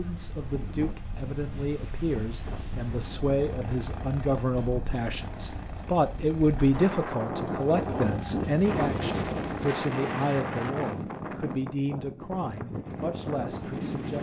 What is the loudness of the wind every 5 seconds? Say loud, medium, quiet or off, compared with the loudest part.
medium, loud, loud.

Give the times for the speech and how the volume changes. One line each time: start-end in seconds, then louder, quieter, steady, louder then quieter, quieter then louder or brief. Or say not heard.
0.0-14.1 louder then quieter.